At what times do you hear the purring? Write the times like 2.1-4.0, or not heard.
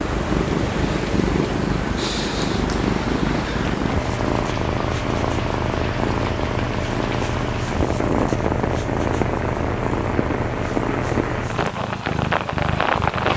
0.0-13.3.